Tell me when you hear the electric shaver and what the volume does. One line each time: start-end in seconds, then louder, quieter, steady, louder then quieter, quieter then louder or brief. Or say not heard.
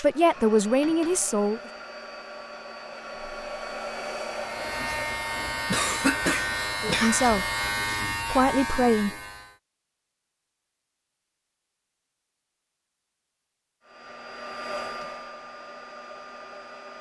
4.3-9.6 steady.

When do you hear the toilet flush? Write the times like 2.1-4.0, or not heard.
not heard.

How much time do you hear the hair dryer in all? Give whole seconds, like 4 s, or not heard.
11 s.